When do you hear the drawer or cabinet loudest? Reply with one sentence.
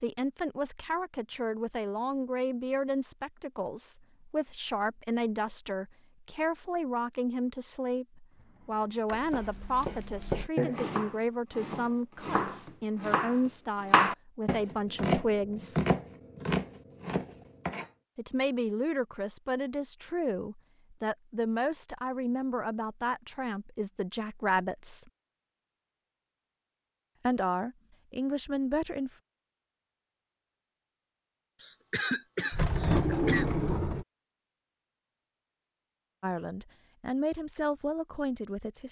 The loudest moment of the drawer or cabinet is at 33 seconds.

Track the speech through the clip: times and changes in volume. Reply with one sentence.
You can hear the speech from 0.0 to 15.8 s, at a steady volume; from 18.1 to 25.1 s, at a steady volume; briefly from 27.2 to 29.1 s; and briefly from 36.2 to 38.8 s.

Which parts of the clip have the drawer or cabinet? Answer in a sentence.
You can hear the drawer or cabinet from 8.4 to 9.2 s and from 32.5 to 34.0 s.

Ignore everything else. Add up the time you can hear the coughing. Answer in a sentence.
You can hear the coughing for 2 seconds altogether.